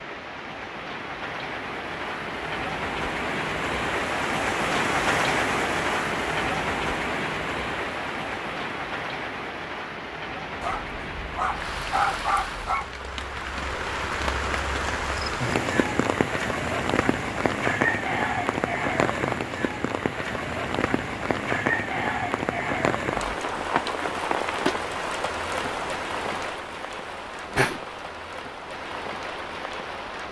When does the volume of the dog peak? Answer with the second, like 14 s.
12 s.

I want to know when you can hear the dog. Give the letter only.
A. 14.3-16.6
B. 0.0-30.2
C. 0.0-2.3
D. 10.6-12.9
D.